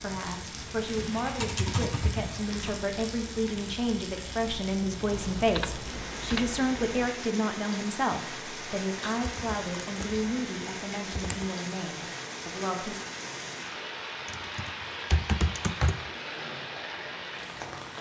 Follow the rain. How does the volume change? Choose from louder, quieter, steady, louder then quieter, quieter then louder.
steady.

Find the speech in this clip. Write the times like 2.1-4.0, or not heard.
0.0-12.9.